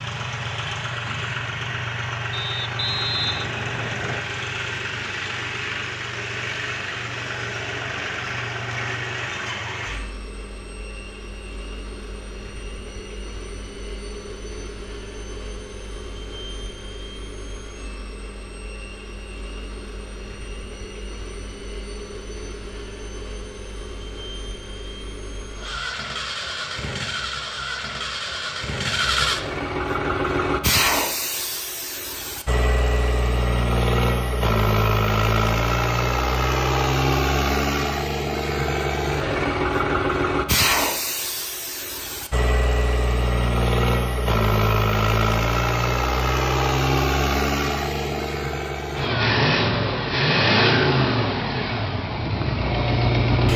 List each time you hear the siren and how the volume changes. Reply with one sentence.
The siren can't be heard in this clip.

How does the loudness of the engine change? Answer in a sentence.
The loudness of the engine goes down, then up.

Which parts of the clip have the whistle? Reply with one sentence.
You can hear the whistle from 2.3 to 4.2 s.